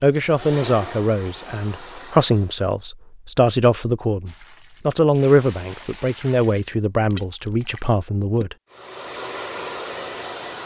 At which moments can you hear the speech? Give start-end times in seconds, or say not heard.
0.0-8.6.